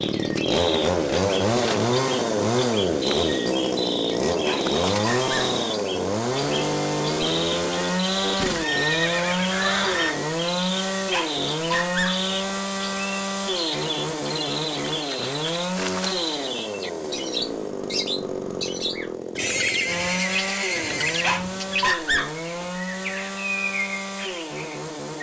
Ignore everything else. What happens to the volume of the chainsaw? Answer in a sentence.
The loudness of the chainsaw goes down.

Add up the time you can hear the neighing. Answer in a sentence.
You can hear the neighing for 4 seconds altogether.